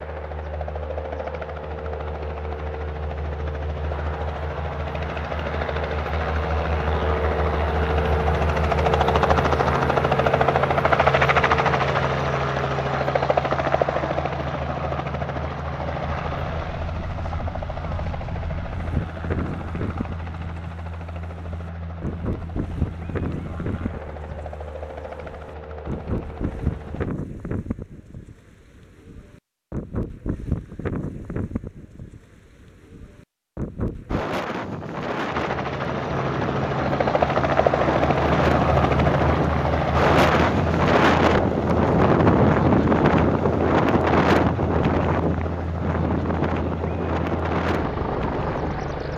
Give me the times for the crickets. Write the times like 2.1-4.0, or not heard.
not heard.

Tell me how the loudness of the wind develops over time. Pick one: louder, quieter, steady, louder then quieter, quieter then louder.
louder.